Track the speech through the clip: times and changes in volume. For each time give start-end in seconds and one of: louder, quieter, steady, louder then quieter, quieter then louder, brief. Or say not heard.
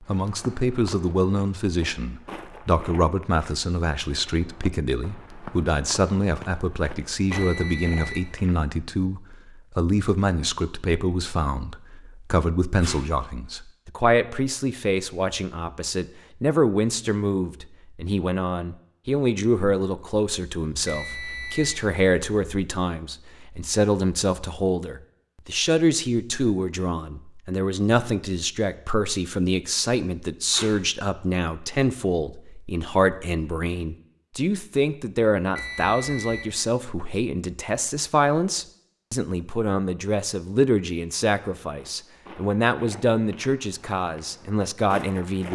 0.1-45.5 steady.